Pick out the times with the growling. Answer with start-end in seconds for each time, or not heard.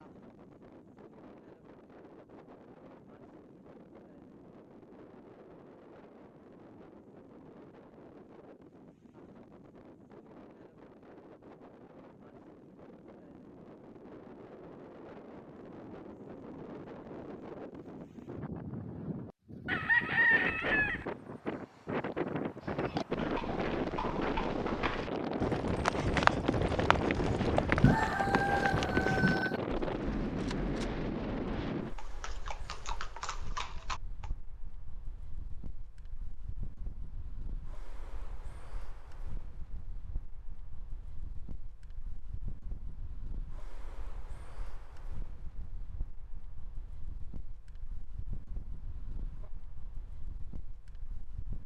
not heard.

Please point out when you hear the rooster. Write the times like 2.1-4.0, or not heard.
19.6-21.1, 27.8-29.6.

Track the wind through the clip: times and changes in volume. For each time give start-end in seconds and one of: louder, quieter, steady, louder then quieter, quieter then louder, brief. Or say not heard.
0.0-51.6 louder then quieter.